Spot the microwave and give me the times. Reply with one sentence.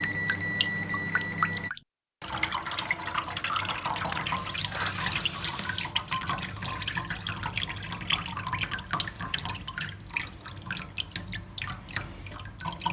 You can hear the microwave from 0.0 to 1.7 s.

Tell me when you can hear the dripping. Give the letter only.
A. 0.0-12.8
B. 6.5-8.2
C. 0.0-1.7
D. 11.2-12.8
A.